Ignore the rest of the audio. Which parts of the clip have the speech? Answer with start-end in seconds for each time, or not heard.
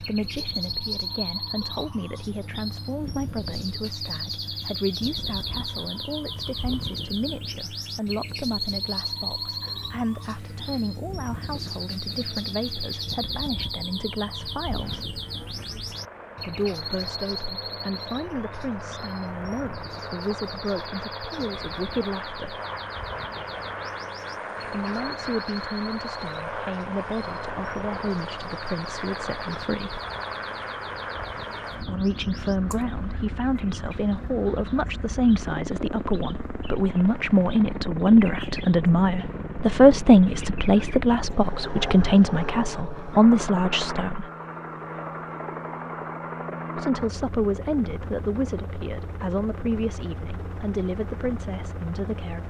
0.0-15.1, 16.4-22.6, 24.6-30.0, 31.8-44.3, 46.8-52.4.